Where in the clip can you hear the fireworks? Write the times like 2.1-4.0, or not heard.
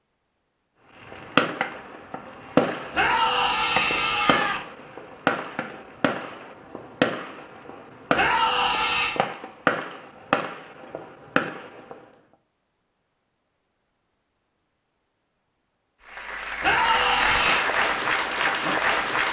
1.0-11.9.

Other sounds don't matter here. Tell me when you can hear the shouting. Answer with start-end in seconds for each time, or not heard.
2.9-4.6, 8.1-9.2, 16.6-17.7.